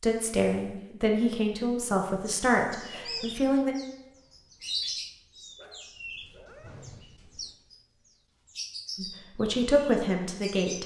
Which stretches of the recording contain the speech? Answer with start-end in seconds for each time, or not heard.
0.0-3.8, 8.9-10.8.